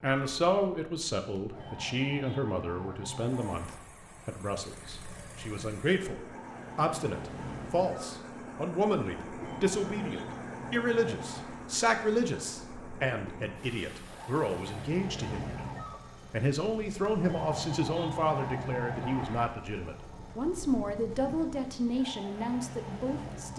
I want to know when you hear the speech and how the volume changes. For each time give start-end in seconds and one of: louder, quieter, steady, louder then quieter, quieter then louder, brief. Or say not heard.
0.0-23.5 steady.